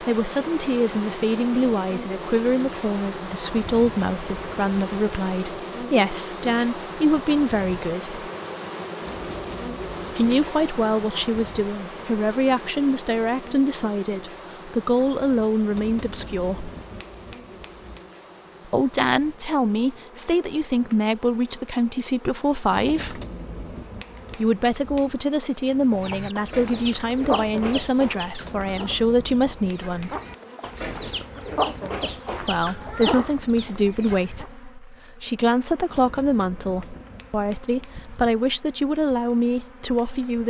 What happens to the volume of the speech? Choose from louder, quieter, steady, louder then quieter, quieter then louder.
steady.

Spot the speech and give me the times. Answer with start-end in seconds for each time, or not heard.
0.0-8.2, 10.2-16.7, 18.6-23.2, 24.4-30.1, 32.4-40.4.